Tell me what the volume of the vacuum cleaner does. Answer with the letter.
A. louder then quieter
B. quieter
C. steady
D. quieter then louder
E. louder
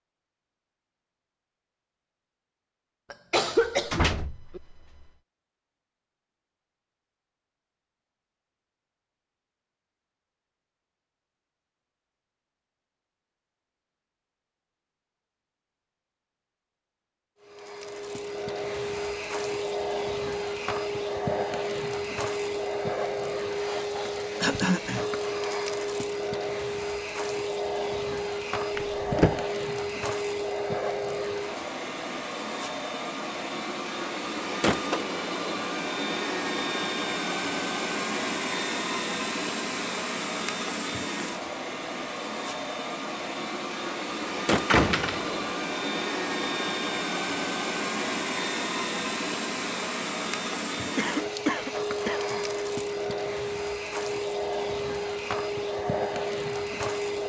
C.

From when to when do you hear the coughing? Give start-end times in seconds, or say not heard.
3.1-4.6, 24.4-25.1, 51.0-52.4.